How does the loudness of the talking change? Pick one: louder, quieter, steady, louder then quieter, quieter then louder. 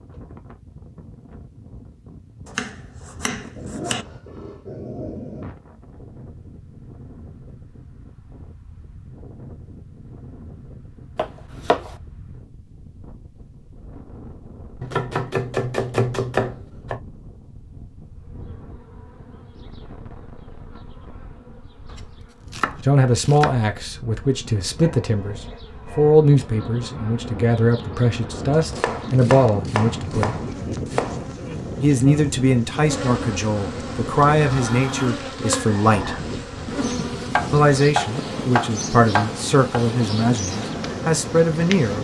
steady.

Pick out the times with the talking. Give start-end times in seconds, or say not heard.
22.9-30.4, 31.8-36.2, 37.5-41.9.